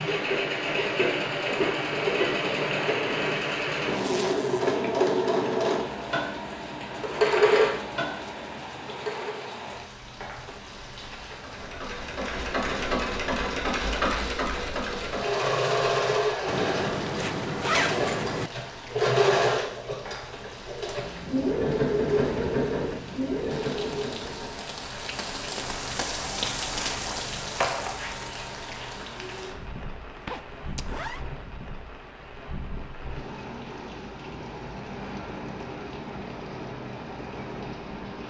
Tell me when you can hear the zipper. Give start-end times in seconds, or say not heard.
3.9-4.8, 16.4-18.5, 30.1-31.2.